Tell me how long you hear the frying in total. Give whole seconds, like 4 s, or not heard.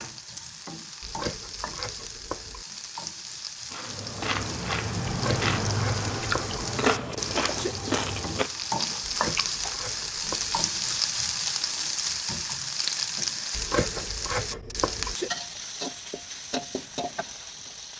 18 s.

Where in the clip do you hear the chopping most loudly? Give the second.
14 s.